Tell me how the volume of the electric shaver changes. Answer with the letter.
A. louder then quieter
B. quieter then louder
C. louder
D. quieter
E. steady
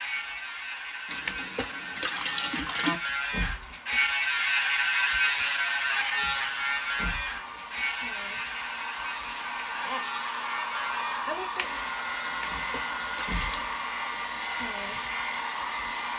A.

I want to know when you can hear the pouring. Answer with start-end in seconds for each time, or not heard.
1.1-3.0, 12.2-13.7.